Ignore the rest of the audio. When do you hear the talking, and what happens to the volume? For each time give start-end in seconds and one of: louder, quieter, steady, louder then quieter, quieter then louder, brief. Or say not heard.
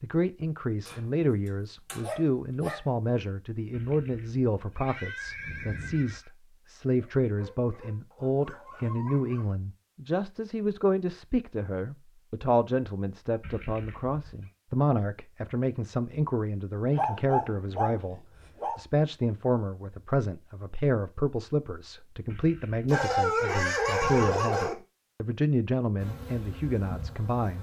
0.0-27.5 steady.